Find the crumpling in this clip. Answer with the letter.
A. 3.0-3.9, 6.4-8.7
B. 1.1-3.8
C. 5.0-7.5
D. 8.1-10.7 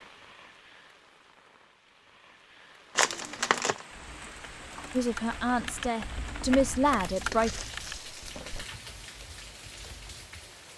A.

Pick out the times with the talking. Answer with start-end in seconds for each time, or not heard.
5.0-7.5.